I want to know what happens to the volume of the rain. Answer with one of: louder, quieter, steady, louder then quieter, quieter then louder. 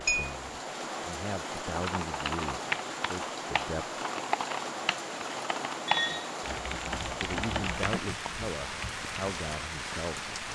steady.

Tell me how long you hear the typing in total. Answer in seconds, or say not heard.
8 s.